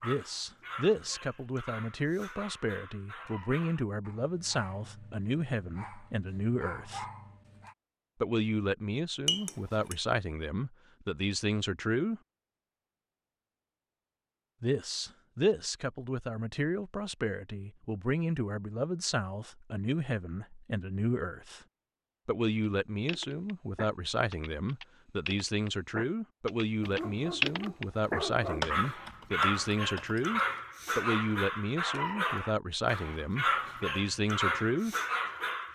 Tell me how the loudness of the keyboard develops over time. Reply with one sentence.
The loudness of the keyboard goes up, then down.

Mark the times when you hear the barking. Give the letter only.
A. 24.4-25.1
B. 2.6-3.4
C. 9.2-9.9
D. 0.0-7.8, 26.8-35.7
D.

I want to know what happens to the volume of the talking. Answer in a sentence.
The volume of the talking stays about the same.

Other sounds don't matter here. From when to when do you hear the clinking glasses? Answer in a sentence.
You can hear the clinking glasses from 9.2 to 9.9 s.